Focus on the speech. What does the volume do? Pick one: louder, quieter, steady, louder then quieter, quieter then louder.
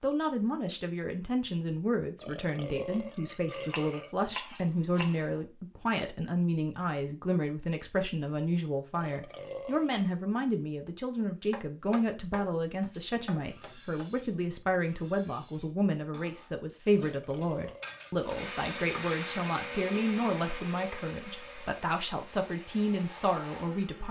steady.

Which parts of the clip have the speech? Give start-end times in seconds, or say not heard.
0.0-24.0.